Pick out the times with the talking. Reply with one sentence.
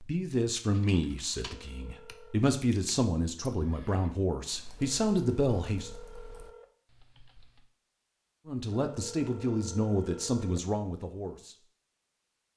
The talking can be heard from 0.0 to 5.9 s and from 8.4 to 11.7 s.